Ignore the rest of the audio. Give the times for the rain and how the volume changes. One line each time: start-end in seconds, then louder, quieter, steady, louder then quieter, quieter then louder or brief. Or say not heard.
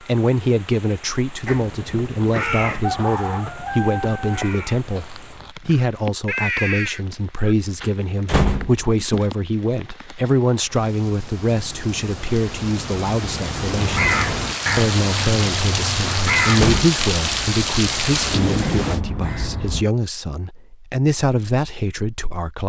0.0-19.0 louder.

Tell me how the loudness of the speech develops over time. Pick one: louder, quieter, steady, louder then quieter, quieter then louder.
steady.